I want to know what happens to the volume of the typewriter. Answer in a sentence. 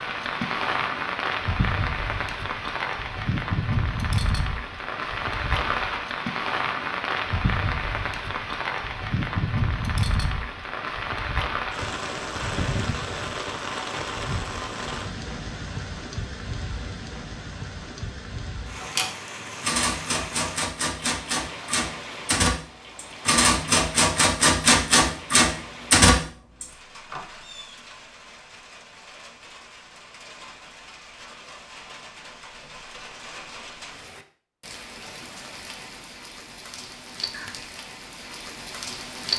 The loudness of the typewriter goes up.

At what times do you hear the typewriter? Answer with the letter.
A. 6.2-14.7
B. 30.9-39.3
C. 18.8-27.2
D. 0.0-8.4
C.